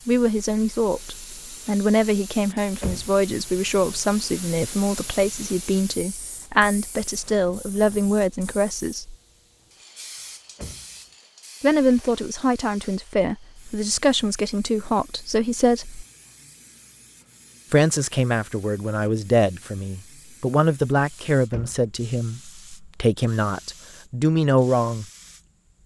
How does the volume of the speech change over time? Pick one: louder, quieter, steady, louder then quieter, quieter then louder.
steady.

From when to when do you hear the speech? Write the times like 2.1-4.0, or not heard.
0.1-9.2, 11.6-16.1, 17.7-25.1.